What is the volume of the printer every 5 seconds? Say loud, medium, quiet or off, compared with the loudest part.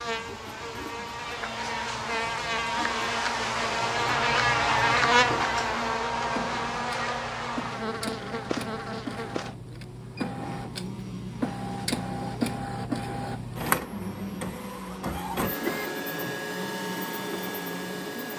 quiet, medium, loud, loud.